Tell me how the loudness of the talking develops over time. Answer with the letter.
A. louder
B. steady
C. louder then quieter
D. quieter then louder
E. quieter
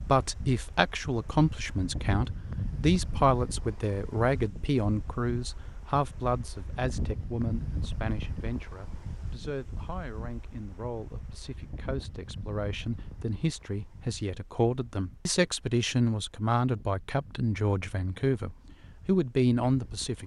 D.